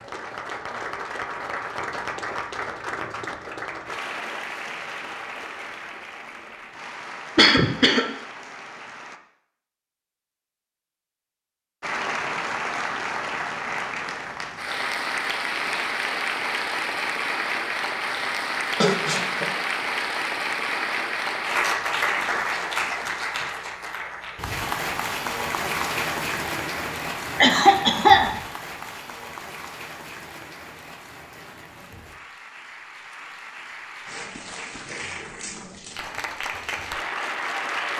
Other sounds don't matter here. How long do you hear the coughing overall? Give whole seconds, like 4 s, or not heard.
2 s.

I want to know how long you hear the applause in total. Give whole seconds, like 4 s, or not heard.
35 s.